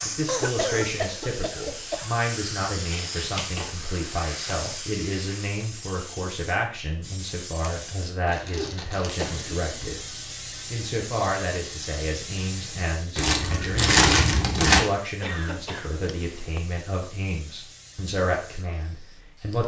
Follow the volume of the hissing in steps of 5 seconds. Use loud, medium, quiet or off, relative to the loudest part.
loud, loud, loud, quiet.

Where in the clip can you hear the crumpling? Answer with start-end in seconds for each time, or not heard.
2.9-4.6, 7.5-9.3, 13.2-14.8.